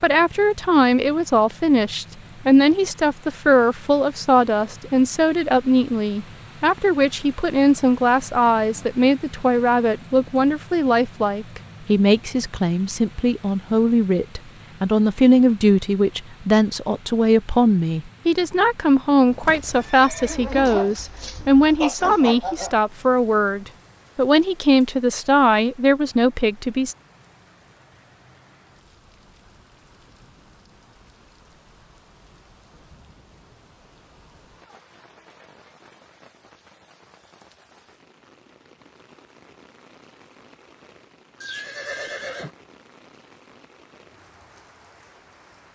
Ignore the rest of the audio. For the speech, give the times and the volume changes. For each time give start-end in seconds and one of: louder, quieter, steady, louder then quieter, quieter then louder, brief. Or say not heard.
0.0-26.9 steady.